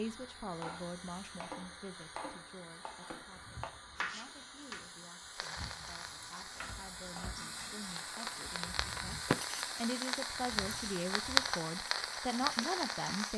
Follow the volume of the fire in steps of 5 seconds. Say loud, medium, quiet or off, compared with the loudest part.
off, medium, loud.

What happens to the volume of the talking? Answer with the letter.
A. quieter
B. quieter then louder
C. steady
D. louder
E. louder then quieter
B.